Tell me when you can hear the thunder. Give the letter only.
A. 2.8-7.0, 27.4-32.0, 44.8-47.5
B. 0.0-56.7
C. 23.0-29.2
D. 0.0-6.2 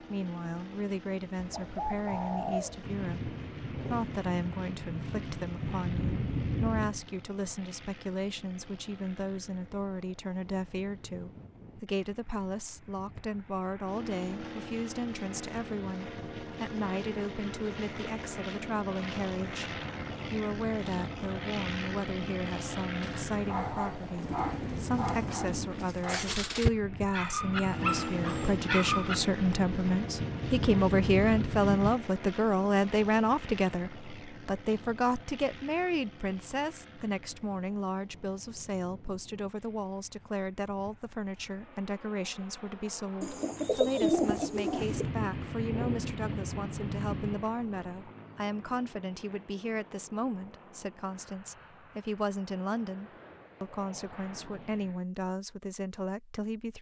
A.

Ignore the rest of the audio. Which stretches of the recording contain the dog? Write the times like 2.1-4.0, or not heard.
23.0-29.2.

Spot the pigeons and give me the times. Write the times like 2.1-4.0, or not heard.
1.4-2.9, 24.1-25.9, 43.2-45.0.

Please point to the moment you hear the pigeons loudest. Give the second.
44 s.